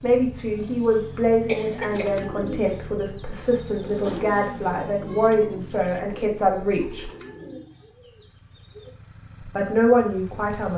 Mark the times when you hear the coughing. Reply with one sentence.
You can hear the coughing from 1.4 to 2.2 s.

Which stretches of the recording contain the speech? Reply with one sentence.
You can hear the speech from 0.0 to 7.1 s and from 9.4 to 10.7 s.